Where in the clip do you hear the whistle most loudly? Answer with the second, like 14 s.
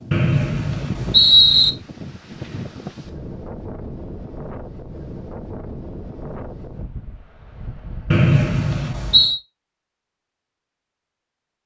1 s.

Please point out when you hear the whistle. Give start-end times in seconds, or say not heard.
0.1-1.7, 8.1-9.4.